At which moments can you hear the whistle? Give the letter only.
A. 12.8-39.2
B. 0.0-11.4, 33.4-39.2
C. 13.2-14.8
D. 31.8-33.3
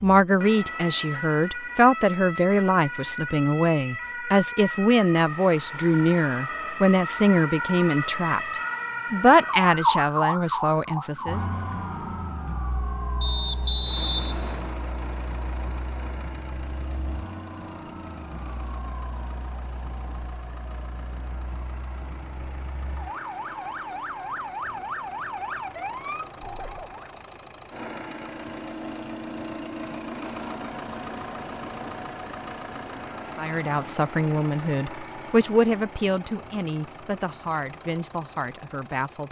C.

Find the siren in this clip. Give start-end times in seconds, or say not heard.
0.0-27.1.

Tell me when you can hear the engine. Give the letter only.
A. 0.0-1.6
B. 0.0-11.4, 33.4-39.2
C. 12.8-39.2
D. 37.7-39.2
C.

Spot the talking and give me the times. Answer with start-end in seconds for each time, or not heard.
0.0-11.4, 33.4-39.2.